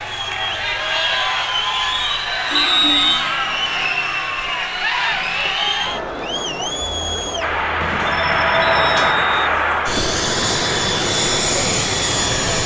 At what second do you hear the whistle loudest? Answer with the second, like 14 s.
3 s.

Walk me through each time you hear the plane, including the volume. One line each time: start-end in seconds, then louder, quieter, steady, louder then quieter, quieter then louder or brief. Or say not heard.
7.4-12.6 steady.